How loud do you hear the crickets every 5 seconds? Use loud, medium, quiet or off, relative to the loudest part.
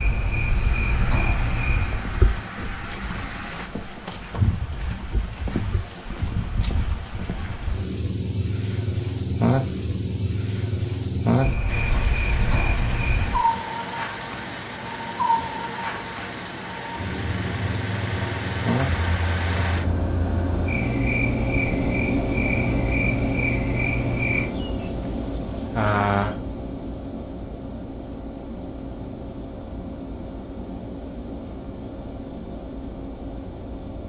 medium, loud, loud, medium, medium, loud, loud.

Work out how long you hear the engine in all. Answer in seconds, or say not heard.
26 s.